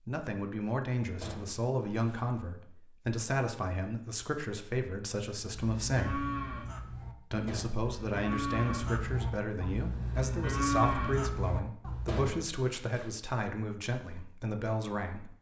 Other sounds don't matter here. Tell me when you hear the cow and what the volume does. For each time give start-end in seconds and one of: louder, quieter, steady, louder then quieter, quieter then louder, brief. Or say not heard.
5.3-12.2 quieter then louder.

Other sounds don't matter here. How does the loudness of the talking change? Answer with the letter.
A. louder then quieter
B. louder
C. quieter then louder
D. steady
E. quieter
D.